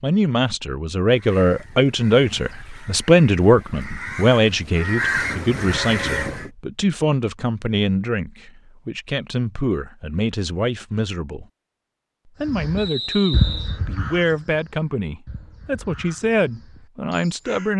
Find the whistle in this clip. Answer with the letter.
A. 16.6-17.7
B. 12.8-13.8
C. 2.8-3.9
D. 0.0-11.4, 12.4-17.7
B.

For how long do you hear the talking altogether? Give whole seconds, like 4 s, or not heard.
17 s.